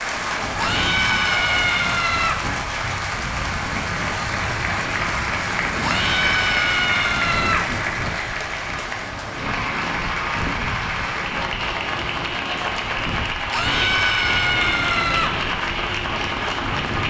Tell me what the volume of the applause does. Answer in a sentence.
The loudness of the applause stays about the same.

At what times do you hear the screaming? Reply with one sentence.
The screaming can be heard from 0.6 to 2.4 s, from 5.8 to 7.7 s and from 13.5 to 15.3 s.